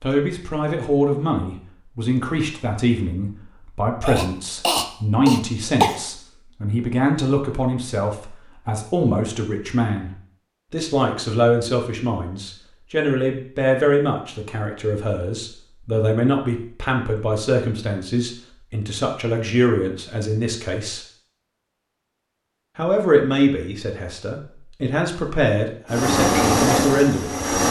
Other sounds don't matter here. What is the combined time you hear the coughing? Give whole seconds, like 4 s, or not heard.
2 s.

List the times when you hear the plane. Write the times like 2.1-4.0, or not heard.
25.9-27.6.